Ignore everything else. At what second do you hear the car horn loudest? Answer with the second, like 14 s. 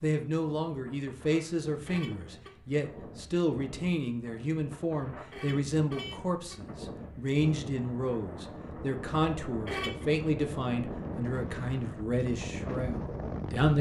10 s.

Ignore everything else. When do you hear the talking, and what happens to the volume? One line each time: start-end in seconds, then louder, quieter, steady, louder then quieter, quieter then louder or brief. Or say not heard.
0.0-13.7 steady.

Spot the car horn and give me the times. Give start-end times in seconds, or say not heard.
1.9-2.5, 5.3-6.6, 9.7-10.1.